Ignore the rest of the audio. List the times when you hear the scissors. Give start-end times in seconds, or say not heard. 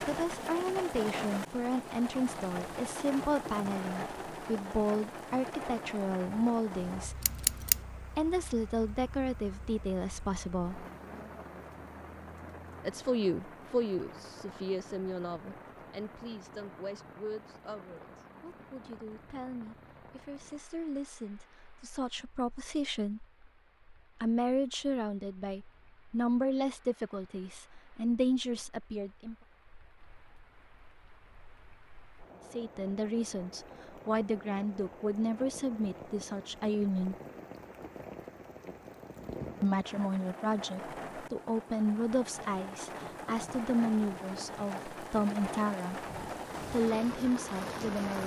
7.2-7.8.